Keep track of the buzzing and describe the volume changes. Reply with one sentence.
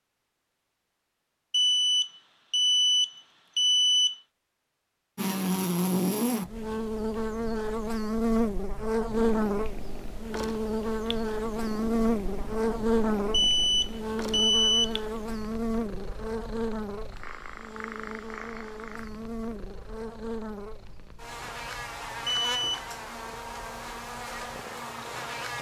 The volume of the buzzing goes down.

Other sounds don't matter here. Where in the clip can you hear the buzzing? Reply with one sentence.
The buzzing can be heard from 5.2 to 25.5 s.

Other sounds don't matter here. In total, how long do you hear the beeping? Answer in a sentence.
You can hear the beeping for 5 seconds altogether.